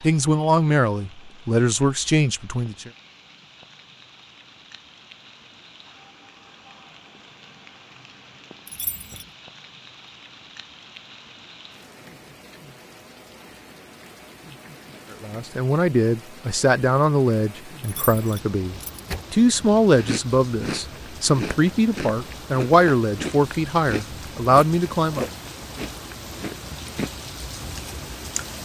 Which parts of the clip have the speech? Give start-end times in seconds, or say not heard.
0.0-2.9, 15.1-25.3.